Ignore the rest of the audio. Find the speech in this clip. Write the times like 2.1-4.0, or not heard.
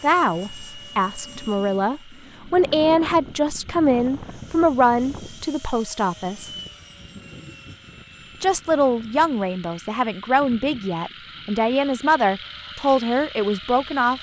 0.0-6.5, 8.4-14.1.